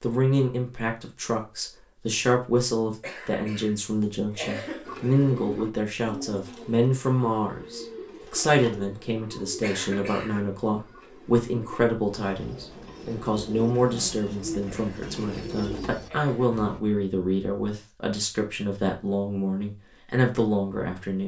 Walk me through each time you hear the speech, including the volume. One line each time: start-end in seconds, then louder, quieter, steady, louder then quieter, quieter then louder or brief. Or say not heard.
0.0-21.2 steady.